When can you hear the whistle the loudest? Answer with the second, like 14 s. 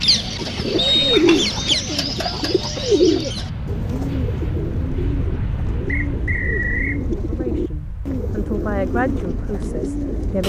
1 s.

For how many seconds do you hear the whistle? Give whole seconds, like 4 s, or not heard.
2 s.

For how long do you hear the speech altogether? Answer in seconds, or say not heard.
3 s.